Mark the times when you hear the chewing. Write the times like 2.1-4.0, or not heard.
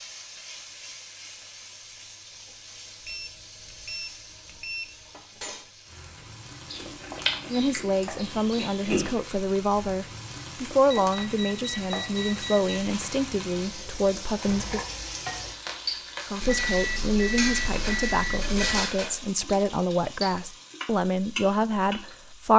6.7-9.1.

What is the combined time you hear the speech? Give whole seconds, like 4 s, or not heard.
14 s.